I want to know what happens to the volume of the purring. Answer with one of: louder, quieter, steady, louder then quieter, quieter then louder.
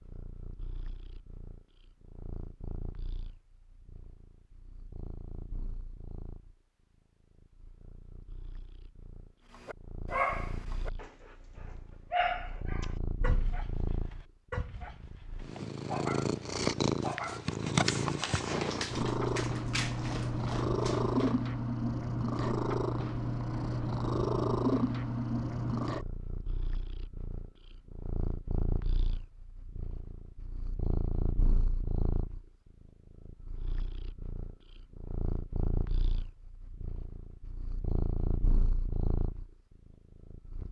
louder then quieter.